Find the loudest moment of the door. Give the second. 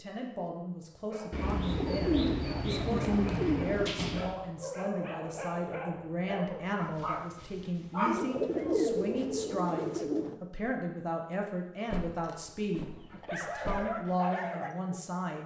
4 s.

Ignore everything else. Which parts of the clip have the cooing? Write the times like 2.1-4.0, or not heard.
1.3-4.0, 8.1-10.4.